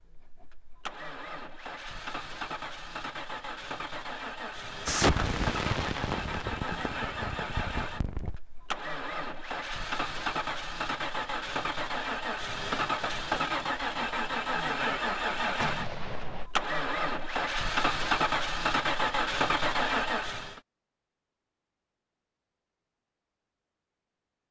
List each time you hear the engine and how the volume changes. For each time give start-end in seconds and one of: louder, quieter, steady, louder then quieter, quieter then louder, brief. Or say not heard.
0.0-20.6 louder.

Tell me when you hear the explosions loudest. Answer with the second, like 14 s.
5 s.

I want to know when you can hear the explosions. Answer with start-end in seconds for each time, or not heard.
4.8-8.4, 15.6-16.5.